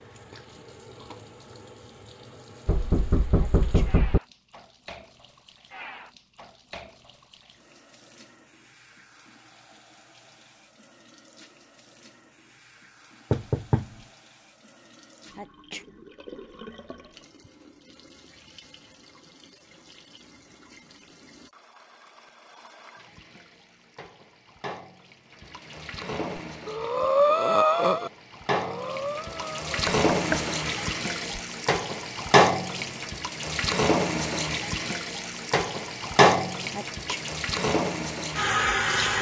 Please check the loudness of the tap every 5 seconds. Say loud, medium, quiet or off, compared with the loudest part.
quiet, quiet, quiet, quiet, quiet, medium, loud, loud.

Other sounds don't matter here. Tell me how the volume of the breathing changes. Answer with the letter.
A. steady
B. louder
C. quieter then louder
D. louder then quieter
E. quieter
E.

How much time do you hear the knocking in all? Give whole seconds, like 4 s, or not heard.
3 s.